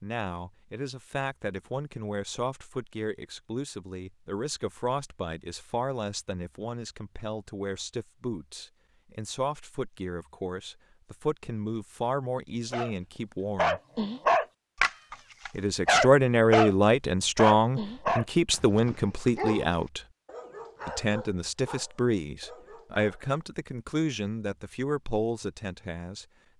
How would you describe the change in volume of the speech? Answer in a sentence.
The volume of the speech goes up, then down.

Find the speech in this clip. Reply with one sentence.
The speech can be heard from 0.0 to 13.8 s, from 15.5 to 20.0 s and from 20.9 to 26.2 s.